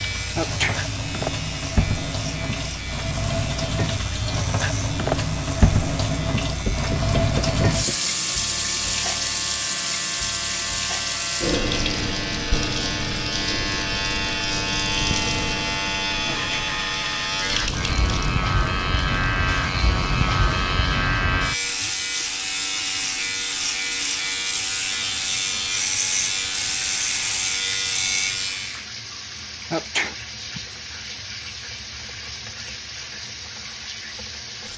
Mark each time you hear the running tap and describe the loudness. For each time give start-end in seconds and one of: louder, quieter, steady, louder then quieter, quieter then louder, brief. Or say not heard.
0.0-34.7 quieter.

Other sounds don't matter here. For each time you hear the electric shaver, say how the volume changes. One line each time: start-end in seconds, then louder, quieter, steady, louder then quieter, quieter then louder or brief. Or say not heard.
0.0-28.9 louder.